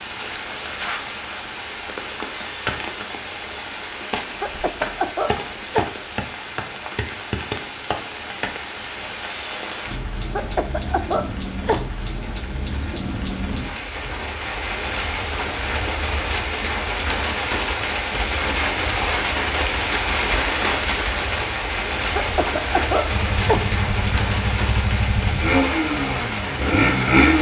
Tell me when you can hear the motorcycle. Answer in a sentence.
The motorcycle can be heard from 23.1 to 27.3 s.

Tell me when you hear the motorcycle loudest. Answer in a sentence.
The loudest moment of the motorcycle is at 27 seconds.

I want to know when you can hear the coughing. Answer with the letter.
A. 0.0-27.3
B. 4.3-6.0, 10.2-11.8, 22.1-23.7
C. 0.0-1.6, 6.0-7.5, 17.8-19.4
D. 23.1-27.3
B.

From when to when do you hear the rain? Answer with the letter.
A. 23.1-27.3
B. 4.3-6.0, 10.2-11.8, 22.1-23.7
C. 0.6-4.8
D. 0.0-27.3
D.